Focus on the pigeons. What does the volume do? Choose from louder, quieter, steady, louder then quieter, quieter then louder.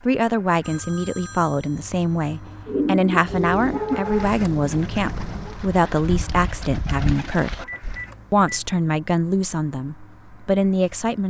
quieter then louder.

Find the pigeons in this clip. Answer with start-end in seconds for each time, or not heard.
2.6-8.0.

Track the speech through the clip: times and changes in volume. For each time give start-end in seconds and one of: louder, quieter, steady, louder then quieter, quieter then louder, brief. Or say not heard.
0.1-7.7 steady
8.3-11.2 brief.